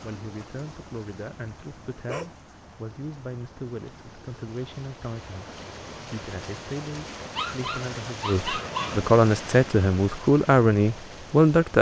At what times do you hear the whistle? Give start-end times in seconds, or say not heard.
not heard.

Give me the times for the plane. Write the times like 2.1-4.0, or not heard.
not heard.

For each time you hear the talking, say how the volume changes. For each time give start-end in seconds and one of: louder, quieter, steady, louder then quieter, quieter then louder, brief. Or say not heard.
0.0-11.7 louder.